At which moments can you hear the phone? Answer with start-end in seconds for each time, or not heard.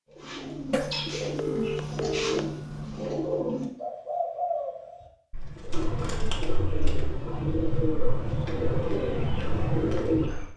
0.7-2.9.